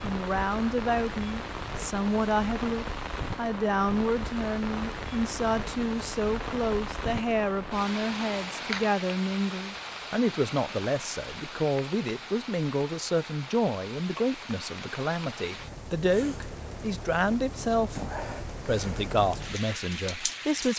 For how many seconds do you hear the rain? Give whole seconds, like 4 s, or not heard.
21 s.